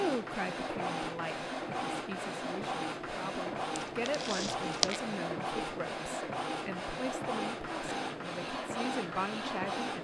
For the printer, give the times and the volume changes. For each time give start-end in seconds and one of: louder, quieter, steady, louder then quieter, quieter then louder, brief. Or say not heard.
0.0-9.9 steady.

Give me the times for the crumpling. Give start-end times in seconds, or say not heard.
3.8-5.0.